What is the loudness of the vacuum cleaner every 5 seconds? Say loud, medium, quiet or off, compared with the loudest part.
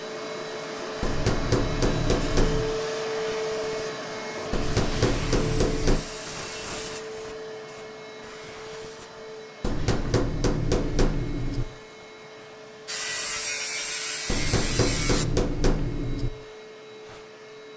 loud, medium, quiet, quiet.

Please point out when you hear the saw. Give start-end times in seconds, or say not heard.
4.6-7.0, 12.8-15.2.